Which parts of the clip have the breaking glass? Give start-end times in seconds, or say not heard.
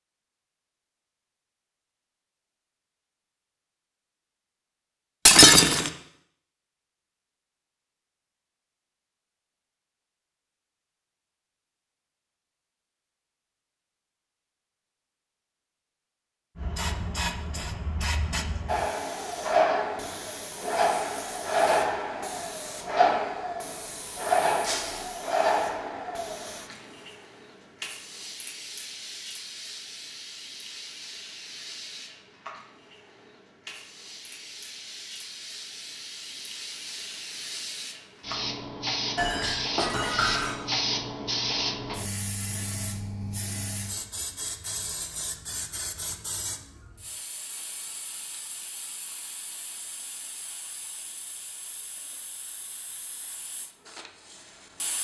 5.2-5.9, 24.6-25.1, 39.1-40.6.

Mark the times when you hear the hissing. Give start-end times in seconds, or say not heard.
16.6-54.9.